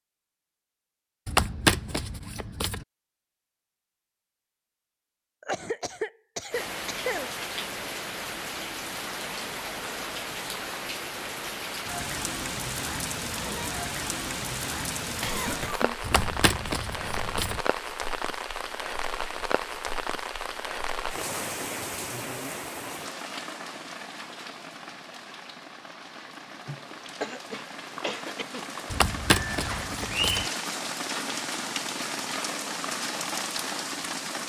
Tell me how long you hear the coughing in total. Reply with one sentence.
You can hear the coughing for 5 seconds altogether.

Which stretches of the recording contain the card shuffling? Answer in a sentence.
You can hear the card shuffling from 1.2 to 2.9 s, from 16.0 to 17.6 s and from 28.9 to 30.5 s.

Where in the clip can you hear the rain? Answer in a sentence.
You can hear the rain from 6.5 to 34.4 s.